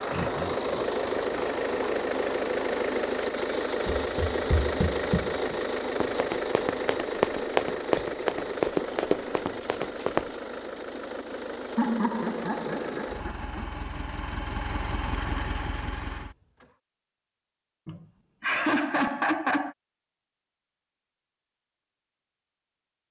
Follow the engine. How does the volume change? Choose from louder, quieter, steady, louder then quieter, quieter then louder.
quieter.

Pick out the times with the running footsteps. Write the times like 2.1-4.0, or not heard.
3.9-10.4.